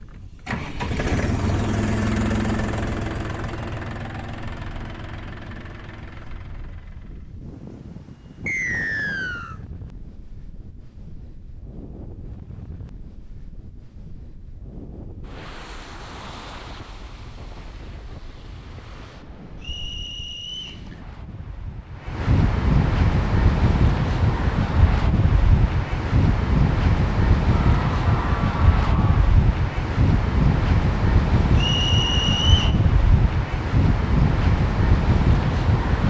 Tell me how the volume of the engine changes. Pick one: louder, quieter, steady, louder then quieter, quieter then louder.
quieter.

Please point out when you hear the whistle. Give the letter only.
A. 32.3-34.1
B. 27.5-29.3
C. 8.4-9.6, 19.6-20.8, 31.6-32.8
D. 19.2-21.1
C.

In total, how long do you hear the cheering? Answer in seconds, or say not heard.
2 s.